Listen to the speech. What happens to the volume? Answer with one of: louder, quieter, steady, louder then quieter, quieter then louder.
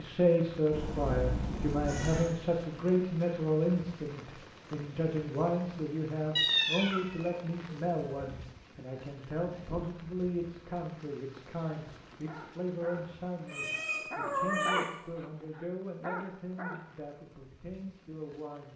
quieter.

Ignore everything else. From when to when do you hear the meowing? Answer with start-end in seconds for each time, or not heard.
0.7-2.4, 6.3-8.3, 13.4-14.8.